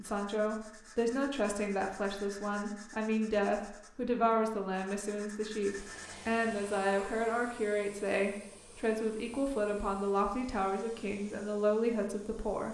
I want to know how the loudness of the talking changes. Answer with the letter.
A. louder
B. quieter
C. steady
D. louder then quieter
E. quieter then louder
C.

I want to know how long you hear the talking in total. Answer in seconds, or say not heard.
13 s.